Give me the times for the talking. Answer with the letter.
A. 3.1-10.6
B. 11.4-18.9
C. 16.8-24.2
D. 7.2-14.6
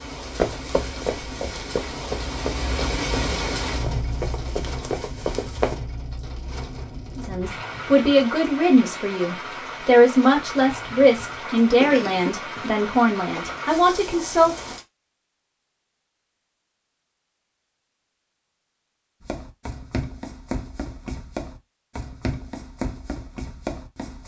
D.